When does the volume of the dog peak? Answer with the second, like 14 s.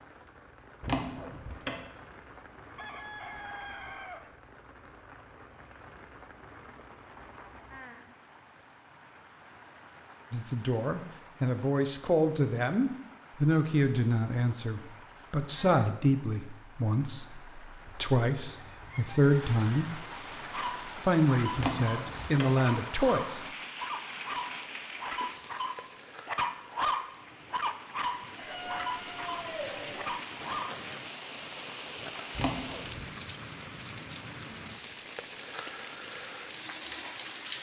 27 s.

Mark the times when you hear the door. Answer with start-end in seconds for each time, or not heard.
0.8-1.9, 21.6-22.6, 32.4-33.0.